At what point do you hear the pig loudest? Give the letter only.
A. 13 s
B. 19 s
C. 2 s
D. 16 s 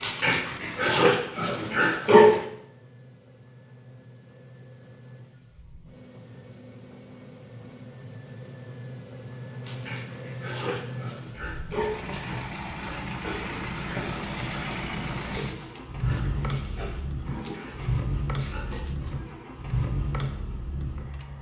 C.